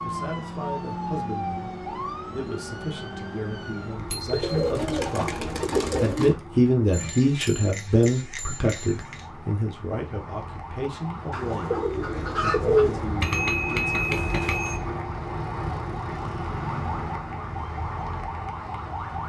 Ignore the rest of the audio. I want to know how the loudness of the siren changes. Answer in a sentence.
The volume of the siren goes down, then up.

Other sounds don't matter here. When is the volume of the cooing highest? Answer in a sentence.
The volume of the cooing peaks at 13 seconds.